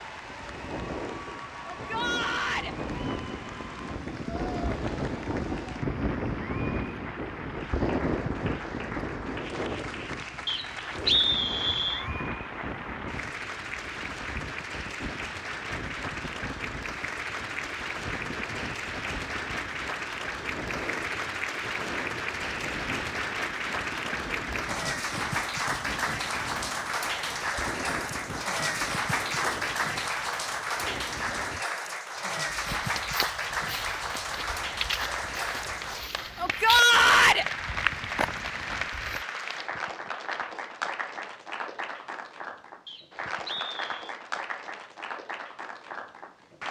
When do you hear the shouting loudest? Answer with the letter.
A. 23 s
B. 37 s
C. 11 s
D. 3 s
B.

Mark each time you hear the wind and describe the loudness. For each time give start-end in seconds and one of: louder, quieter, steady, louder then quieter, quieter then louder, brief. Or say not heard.
0.0-31.6 quieter.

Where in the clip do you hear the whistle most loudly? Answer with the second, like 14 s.
11 s.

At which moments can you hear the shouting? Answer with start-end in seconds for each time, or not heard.
1.7-2.8, 36.4-37.5.